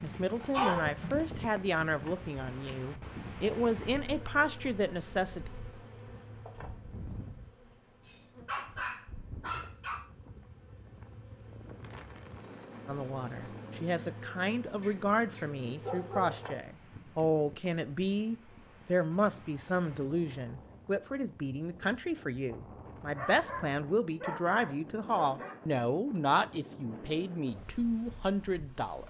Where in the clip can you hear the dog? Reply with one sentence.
The dog can be heard from 0.5 to 0.9 s, from 8.0 to 10.0 s, from 14.8 to 16.4 s and from 23.1 to 25.6 s.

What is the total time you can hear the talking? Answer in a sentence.
You can hear the talking for 22 seconds altogether.